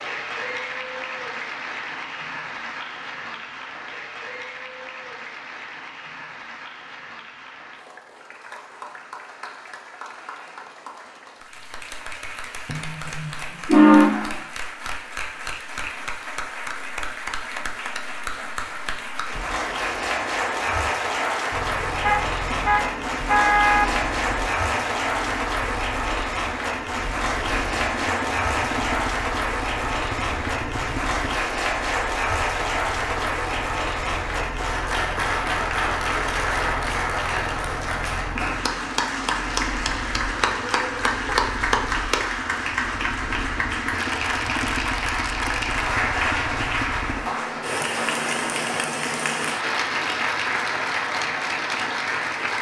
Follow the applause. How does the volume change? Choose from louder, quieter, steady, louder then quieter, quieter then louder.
louder.